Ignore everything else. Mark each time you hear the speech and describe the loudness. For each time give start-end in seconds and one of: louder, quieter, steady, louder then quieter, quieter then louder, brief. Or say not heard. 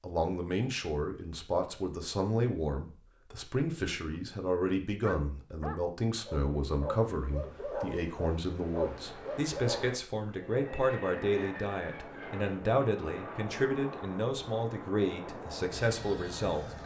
0.0-16.8 steady.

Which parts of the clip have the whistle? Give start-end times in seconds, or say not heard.
not heard.